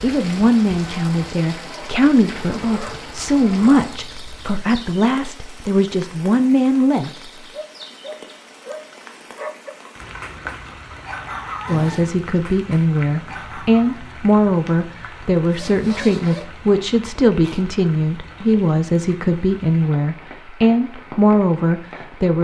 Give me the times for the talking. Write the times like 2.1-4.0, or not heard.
0.0-7.1, 11.7-22.3.